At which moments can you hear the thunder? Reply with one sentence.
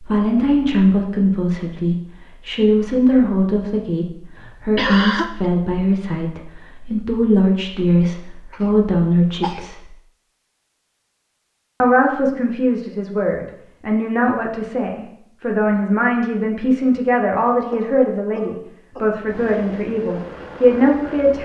The thunder can't be heard in this clip.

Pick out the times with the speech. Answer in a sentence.
The speech can be heard from 0.0 to 9.9 s and from 11.8 to 21.3 s.